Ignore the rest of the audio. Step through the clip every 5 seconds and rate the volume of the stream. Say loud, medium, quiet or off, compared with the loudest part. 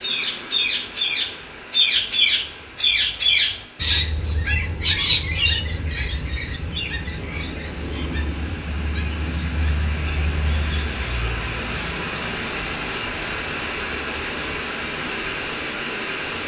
quiet, medium, loud, loud.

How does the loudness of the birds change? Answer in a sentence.
The volume of the birds goes down.